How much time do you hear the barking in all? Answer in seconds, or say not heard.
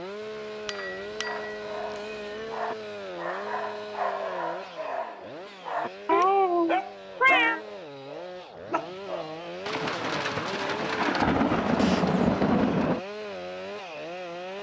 8 s.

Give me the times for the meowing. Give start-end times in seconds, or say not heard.
0.7-2.5, 6.0-7.6, 11.8-12.2.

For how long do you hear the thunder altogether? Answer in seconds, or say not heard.
3 s.